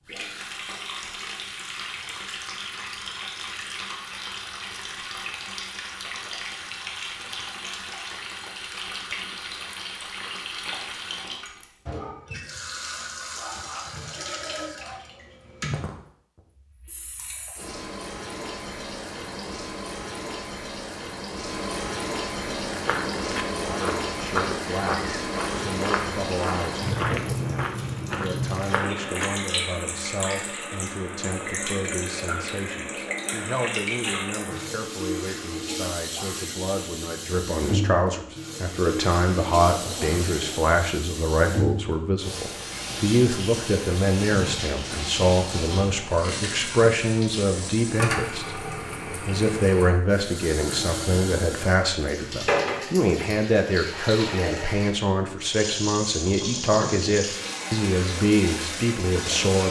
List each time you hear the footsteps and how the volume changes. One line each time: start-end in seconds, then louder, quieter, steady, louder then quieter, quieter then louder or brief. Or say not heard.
22.4-29.3 steady.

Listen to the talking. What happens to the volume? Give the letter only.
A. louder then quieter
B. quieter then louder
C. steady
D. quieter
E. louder
E.